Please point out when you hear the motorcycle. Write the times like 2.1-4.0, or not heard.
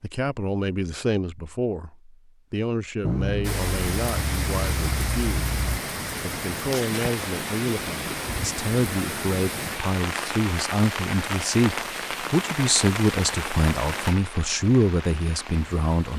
3.0-5.8.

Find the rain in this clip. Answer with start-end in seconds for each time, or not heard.
3.4-16.1.